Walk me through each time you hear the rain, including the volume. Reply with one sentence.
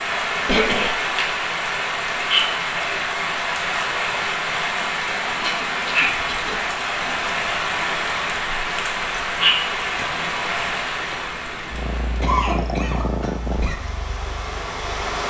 You can hear the rain from 0.0 to 15.2 s, getting quieter.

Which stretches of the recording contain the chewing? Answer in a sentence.
You can't hear the chewing here.